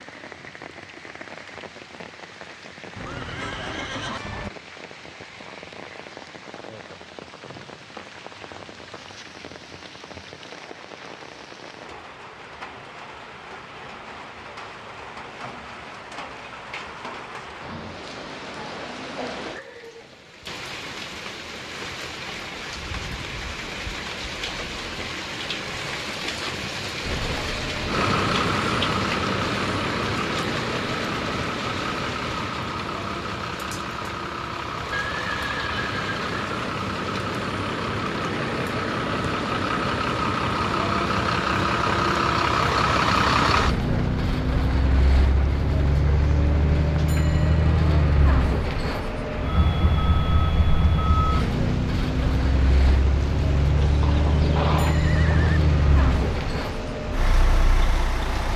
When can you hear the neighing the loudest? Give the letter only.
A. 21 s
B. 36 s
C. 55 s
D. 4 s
C.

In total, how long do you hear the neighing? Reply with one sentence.
The neighing can be heard for 5 seconds in total.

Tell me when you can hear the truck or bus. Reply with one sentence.
You can hear the truck or bus from 27.0 to 58.5 s.